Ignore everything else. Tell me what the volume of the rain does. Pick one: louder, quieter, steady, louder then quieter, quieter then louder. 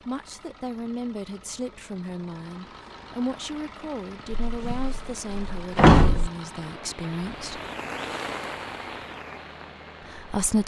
louder then quieter.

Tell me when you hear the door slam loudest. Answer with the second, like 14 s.
6 s.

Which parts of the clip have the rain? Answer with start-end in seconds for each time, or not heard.
2.4-10.6.